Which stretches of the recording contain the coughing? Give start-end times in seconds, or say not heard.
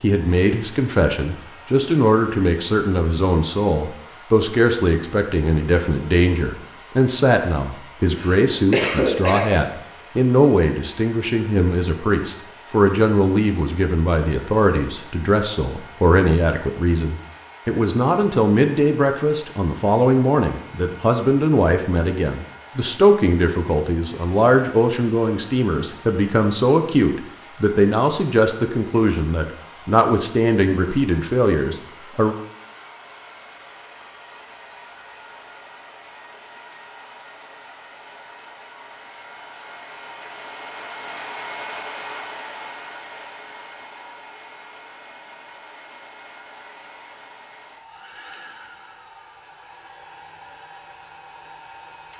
8.2-9.5.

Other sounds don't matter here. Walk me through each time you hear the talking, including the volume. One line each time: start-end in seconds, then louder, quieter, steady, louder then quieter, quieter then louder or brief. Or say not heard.
0.0-32.4 steady.